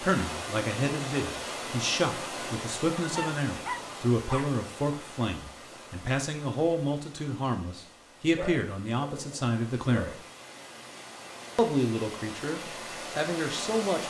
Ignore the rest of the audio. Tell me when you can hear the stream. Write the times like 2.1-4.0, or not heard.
0.0-14.0.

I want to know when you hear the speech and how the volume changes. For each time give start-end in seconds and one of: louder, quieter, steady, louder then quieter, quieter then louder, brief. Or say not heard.
0.0-10.2 steady
11.6-14.0 brief.